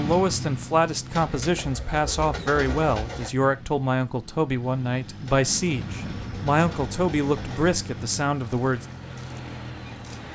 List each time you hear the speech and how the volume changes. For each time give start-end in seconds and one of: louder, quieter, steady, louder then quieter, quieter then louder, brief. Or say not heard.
0.0-8.8 steady.